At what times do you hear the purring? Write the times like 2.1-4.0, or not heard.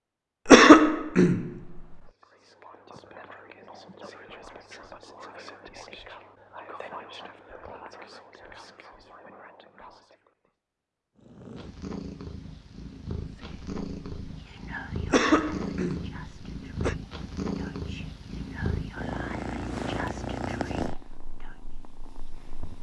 11.2-22.7.